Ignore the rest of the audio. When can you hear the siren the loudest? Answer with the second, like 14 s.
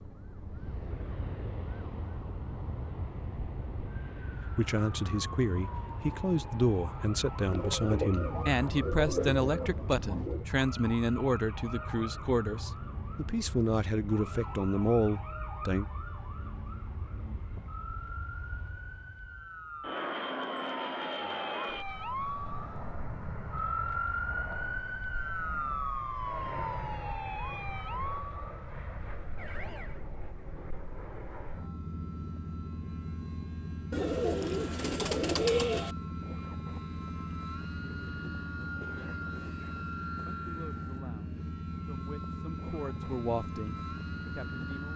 24 s.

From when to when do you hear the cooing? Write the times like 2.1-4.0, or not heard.
7.5-10.4, 33.9-36.0.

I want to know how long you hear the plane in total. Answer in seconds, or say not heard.
45 s.